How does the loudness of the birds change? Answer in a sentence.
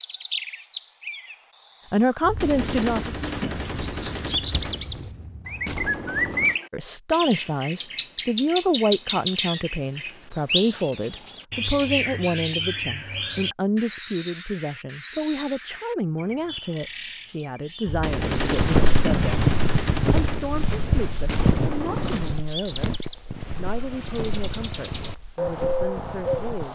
The loudness of the birds goes down, then up.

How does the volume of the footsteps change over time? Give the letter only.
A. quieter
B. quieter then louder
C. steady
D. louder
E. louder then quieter
A.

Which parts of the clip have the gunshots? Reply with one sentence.
You can hear the gunshots from 2.2 to 6.6 s and from 17.9 to 22.3 s.